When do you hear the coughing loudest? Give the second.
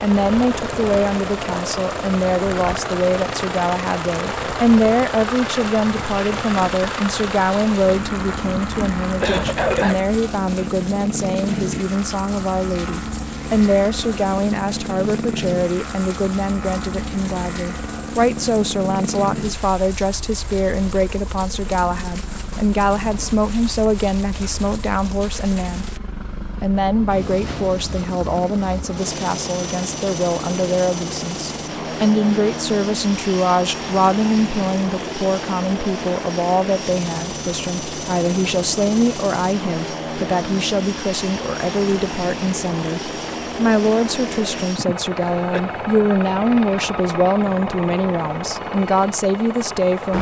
10 s.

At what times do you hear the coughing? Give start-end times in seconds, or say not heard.
8.4-10.0, 44.8-45.6.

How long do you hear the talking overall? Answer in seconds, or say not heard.
49 s.